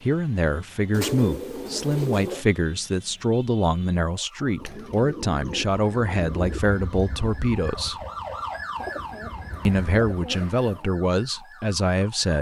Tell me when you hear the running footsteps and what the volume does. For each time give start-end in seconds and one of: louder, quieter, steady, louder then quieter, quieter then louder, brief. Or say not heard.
not heard.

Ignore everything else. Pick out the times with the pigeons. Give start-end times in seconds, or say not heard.
0.9-2.5, 4.5-6.6, 8.8-10.9.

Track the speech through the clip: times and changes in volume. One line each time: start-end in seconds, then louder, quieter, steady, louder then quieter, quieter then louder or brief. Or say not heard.
0.0-8.0 steady
9.7-12.3 brief.